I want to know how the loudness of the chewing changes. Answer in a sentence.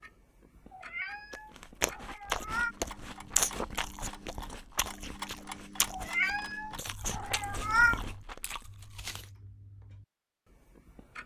The volume of the chewing goes down.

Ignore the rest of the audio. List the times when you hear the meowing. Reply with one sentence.
The meowing can be heard from 0.7 to 2.8 s and from 5.9 to 8.0 s.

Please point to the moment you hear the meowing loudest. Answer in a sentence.
The volume of the meowing peaks at 8 seconds.